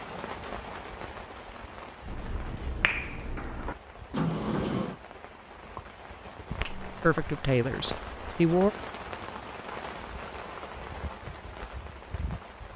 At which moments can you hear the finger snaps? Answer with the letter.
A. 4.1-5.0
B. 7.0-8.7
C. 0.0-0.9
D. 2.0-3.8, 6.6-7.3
D.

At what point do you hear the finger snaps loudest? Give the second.
3 s.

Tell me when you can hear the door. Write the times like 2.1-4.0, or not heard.
4.1-5.0.